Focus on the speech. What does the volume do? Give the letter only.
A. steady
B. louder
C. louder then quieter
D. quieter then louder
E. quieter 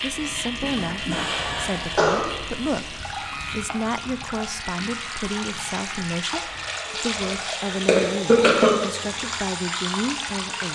A.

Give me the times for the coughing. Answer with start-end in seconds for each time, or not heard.
0.6-2.2, 7.8-8.7.